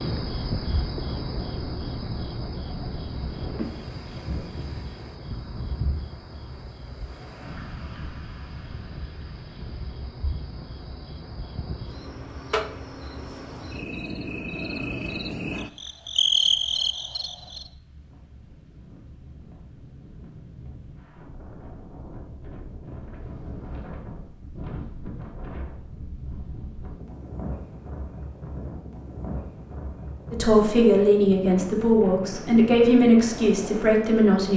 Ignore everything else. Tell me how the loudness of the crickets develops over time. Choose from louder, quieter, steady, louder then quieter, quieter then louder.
quieter then louder.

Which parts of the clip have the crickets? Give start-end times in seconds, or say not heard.
0.0-17.7.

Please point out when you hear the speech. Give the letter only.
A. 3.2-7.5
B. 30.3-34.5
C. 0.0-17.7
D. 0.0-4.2
B.